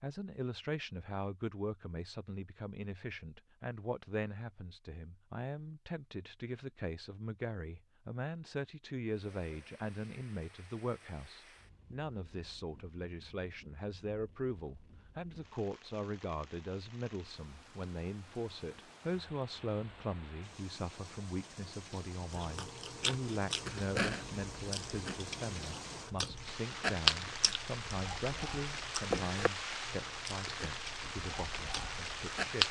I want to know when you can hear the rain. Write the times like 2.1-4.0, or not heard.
9.1-32.6.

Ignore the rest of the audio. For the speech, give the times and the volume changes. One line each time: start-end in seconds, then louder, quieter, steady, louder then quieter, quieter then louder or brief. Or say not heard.
0.0-32.6 steady.